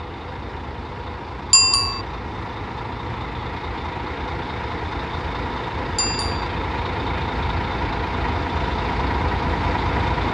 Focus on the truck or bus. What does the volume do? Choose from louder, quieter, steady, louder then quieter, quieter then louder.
louder.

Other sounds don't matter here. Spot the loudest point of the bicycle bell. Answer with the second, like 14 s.
2 s.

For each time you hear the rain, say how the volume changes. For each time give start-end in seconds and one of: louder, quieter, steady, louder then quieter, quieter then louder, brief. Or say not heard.
not heard.